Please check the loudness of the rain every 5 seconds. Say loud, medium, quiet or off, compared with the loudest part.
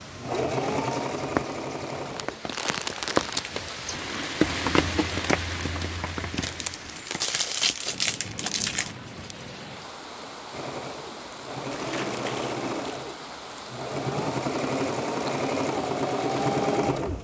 loud, medium, medium, medium.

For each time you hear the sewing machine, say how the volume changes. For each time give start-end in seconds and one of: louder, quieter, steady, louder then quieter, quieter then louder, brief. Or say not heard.
0.0-2.5 brief
10.5-17.1 louder.